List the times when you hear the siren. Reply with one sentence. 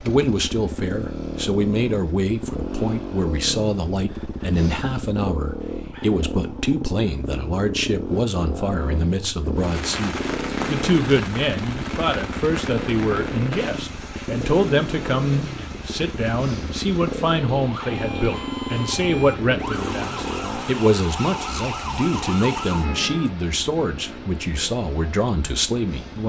The siren can be heard from 17.8 to 23.3 s.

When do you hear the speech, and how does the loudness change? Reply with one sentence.
The speech can be heard from 0.0 to 26.2 s, at a steady volume.